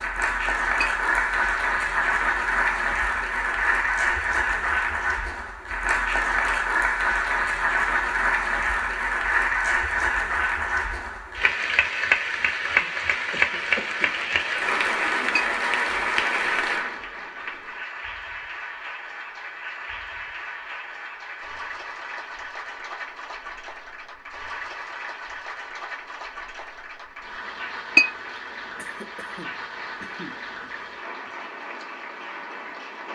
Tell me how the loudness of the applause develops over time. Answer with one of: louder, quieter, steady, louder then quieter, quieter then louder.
quieter.